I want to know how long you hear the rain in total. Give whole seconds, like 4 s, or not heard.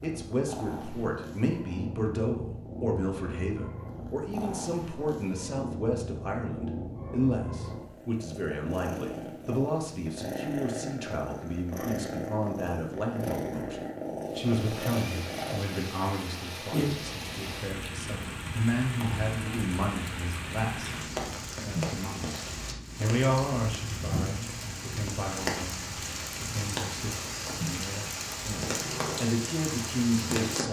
16 s.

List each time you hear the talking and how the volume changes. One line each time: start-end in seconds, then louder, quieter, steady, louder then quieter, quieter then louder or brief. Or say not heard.
0.0-20.9 steady
21.6-30.6 quieter then louder.